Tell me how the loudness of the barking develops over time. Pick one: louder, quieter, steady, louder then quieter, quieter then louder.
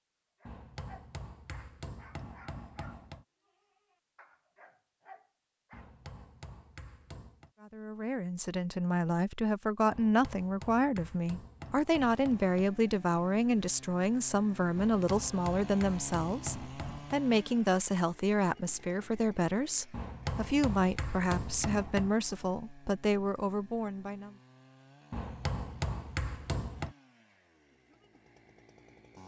quieter then louder.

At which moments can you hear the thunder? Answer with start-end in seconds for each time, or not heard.
not heard.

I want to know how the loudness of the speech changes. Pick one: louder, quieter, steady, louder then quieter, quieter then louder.
steady.